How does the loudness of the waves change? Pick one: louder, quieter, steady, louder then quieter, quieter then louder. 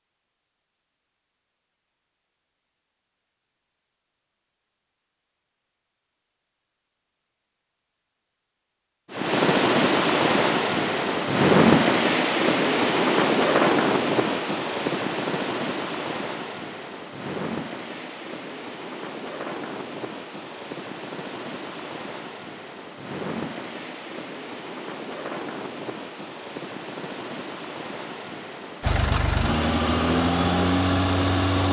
quieter.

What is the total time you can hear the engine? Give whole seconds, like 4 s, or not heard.
3 s.